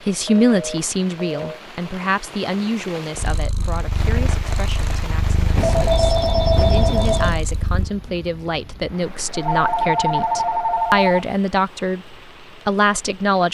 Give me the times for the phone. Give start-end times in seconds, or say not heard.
0.2-1.6, 5.5-7.4, 9.2-11.2.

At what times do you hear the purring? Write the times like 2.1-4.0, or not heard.
3.1-7.9.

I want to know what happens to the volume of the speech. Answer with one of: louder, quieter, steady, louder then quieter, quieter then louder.
quieter then louder.